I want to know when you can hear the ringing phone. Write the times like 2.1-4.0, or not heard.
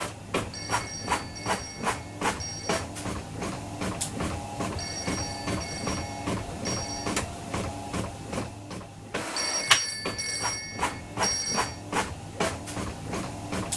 0.5-2.9, 4.8-7.2, 9.3-11.8.